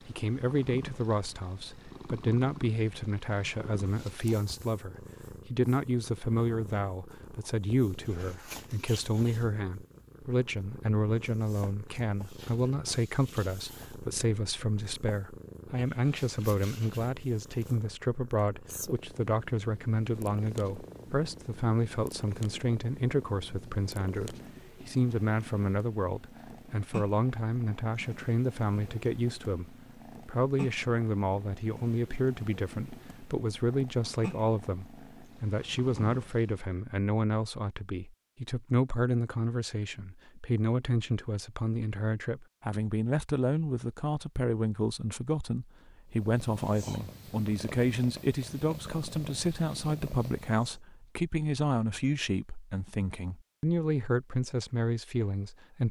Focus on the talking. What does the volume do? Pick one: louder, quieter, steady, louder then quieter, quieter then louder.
steady.